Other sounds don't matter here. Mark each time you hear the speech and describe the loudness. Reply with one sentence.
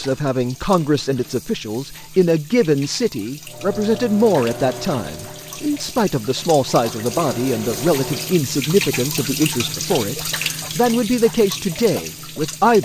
You can hear the speech from 0.0 to 12.8 s, at a steady volume.